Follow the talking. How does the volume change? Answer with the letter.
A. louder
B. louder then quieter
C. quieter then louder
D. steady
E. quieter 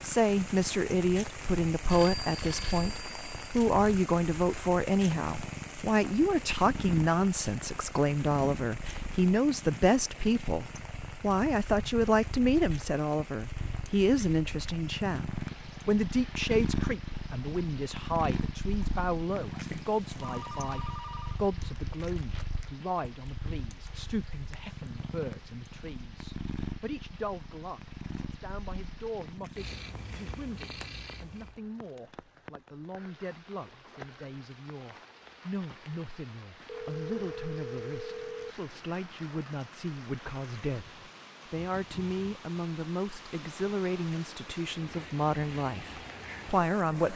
C.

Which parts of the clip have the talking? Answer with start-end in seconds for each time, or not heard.
0.0-47.1.